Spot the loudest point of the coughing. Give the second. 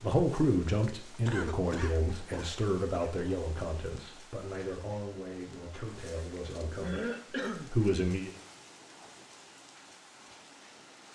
7 s.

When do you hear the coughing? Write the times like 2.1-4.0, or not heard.
1.2-3.2, 6.2-7.7.